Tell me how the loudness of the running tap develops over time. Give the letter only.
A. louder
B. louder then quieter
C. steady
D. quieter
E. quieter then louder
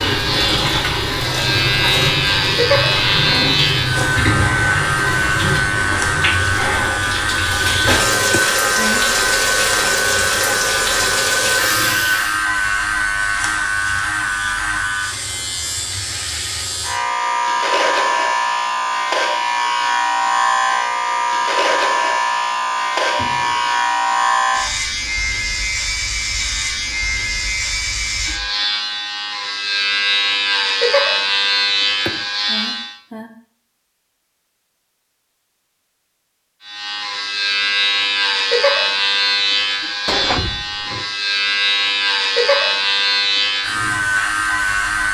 C.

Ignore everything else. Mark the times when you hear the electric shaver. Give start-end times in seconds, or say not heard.
0.0-33.0, 36.6-45.0.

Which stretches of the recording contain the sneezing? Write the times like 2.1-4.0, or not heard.
8.3-9.1, 32.0-33.4.